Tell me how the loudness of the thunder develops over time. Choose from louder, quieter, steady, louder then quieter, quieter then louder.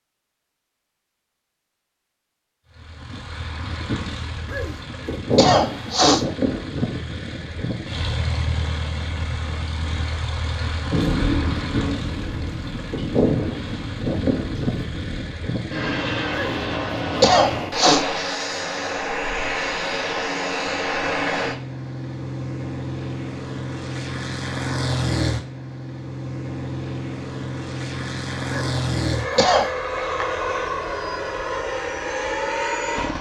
quieter.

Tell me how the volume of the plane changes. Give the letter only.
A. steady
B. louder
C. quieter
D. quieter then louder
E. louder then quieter
A.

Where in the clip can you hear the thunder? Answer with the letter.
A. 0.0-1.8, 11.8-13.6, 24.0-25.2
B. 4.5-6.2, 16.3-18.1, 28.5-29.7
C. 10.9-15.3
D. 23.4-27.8
C.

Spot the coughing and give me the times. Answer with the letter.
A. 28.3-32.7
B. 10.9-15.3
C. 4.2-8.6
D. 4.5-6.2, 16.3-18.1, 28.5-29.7
D.